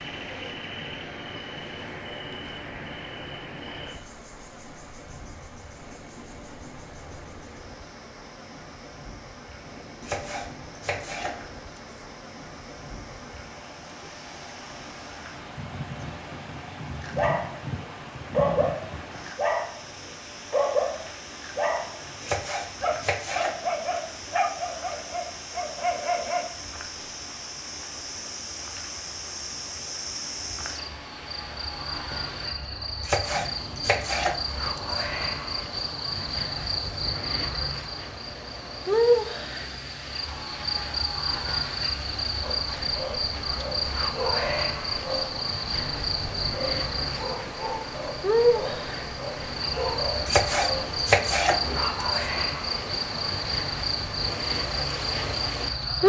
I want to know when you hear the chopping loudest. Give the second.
51 s.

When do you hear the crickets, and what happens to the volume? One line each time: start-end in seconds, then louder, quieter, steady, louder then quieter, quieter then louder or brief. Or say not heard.
0.0-56.0 louder.